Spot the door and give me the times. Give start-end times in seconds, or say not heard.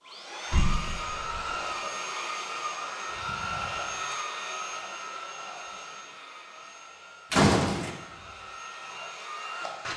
0.5-1.2, 7.3-7.9.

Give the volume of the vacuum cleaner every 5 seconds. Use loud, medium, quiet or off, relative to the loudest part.
loud, medium.